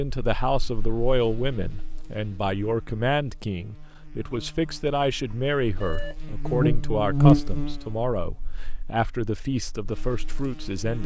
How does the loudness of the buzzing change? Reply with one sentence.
The volume of the buzzing goes up, then down.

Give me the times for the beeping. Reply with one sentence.
You can hear the beeping from 5.3 to 6.2 s.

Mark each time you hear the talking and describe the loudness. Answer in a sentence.
You can hear the talking from 0.0 to 11.0 s, at a steady volume.